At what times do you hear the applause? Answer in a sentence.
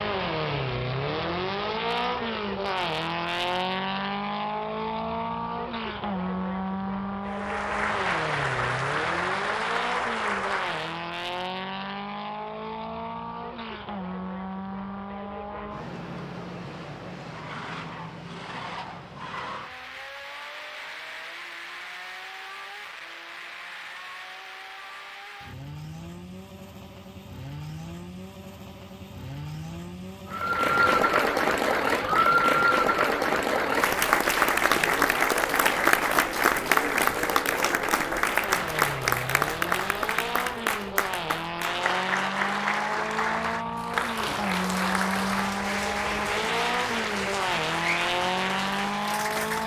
You can hear the applause from 7.2 to 11.1 s and from 30.3 to 49.6 s.